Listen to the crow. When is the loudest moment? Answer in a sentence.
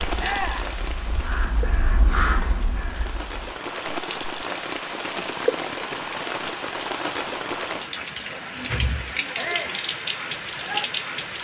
The volume of the crow peaks at 2 seconds.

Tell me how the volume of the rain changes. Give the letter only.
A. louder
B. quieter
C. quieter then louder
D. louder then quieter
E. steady
A.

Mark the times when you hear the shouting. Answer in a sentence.
The shouting can be heard from 0.1 to 0.7 s and from 9.3 to 9.8 s.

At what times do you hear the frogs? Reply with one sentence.
The frogs can't be heard in this clip.